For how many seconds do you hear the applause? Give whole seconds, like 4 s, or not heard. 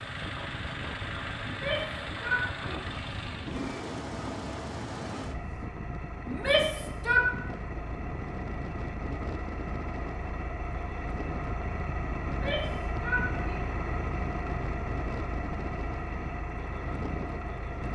not heard.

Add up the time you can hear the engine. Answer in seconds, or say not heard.
18 s.